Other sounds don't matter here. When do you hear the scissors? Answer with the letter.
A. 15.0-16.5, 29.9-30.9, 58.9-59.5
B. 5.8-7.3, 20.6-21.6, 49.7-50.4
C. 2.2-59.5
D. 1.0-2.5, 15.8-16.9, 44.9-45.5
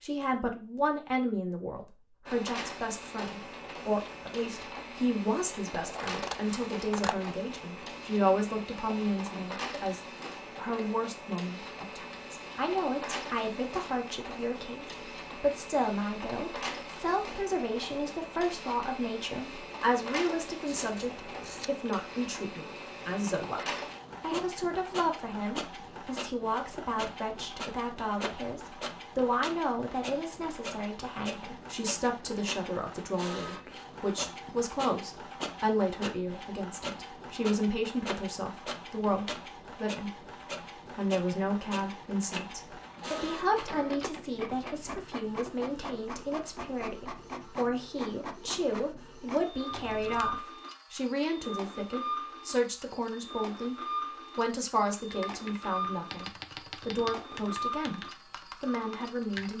B.